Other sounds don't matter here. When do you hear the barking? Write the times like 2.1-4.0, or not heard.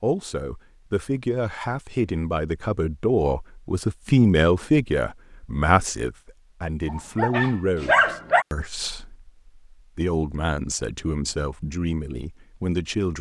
6.8-8.4.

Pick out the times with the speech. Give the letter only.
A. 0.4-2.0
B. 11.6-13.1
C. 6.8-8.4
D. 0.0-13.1
D.